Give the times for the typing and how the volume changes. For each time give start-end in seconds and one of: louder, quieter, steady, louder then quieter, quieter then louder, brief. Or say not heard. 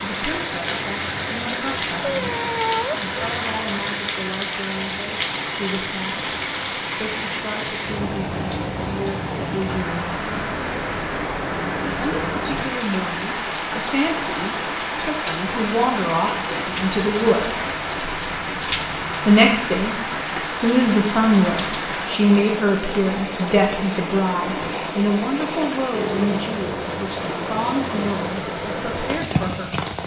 not heard.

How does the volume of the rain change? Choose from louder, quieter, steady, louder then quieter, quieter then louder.
steady.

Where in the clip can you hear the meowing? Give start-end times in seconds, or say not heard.
2.0-3.0.